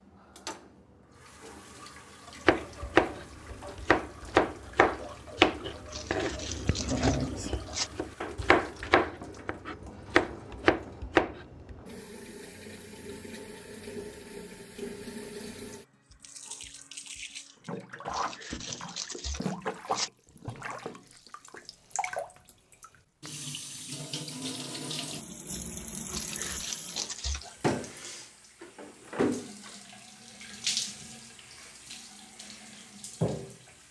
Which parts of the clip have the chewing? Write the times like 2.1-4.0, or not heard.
5.8-7.9, 18.1-20.1, 26.1-27.6.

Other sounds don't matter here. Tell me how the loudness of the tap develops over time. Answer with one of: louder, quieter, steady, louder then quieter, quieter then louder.
louder.